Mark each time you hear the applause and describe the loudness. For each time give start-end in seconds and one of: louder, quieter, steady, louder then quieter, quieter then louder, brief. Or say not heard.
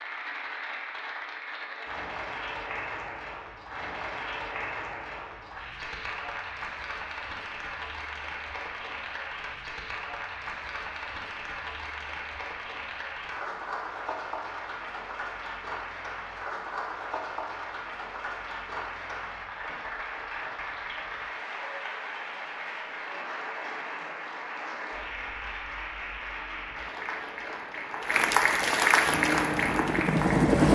0.0-30.7 louder.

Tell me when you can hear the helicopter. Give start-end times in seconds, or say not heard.
29.1-30.7.